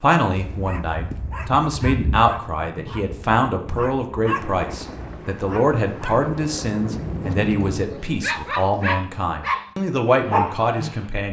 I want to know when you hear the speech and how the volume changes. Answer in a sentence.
The speech can be heard from 0.0 to 11.2 s, at a steady volume.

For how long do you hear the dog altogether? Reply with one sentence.
The dog can be heard for 11 seconds in total.